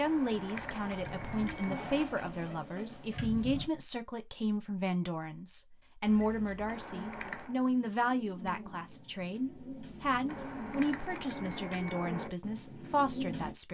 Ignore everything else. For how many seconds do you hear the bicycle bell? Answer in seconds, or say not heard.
5 s.